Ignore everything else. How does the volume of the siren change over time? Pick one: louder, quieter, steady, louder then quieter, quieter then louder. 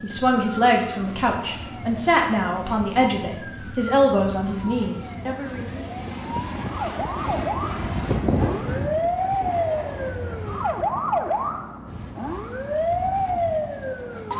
louder.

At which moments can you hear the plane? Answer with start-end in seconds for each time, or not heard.
0.0-14.3.